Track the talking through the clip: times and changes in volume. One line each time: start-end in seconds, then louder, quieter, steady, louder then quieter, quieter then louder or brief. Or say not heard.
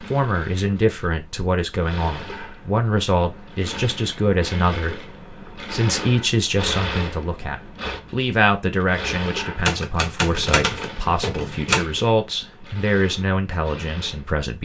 0.0-14.6 steady.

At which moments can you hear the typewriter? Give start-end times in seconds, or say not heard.
9.6-11.8.